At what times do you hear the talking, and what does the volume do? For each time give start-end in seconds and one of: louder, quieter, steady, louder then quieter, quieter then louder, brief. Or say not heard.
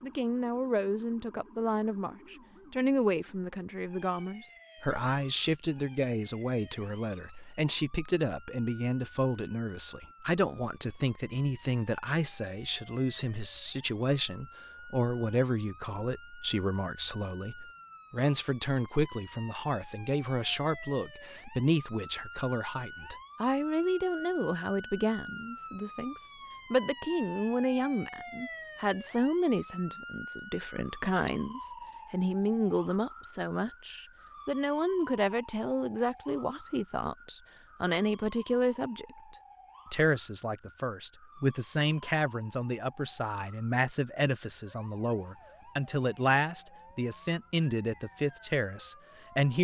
0.0-49.5 steady.